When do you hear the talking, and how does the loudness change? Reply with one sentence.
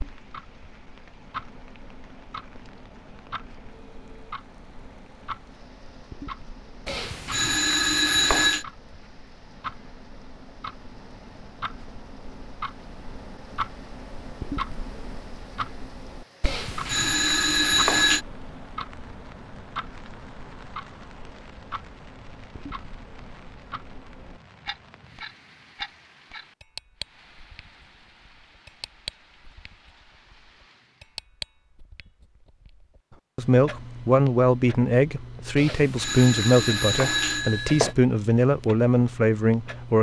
You can hear the talking from 33.4 to 39.9 s, at a steady volume.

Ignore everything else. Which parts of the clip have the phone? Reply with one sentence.
The phone can be heard from 6.8 to 8.7 s, from 16.4 to 18.2 s and from 35.5 to 38.0 s.